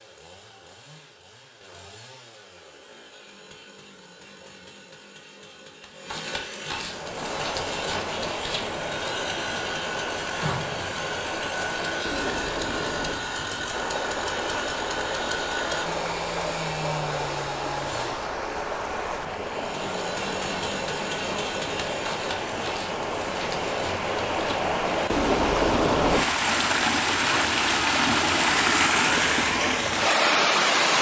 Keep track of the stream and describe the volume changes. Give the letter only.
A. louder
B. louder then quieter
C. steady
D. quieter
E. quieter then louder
A.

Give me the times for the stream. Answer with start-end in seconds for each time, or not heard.
6.8-30.9.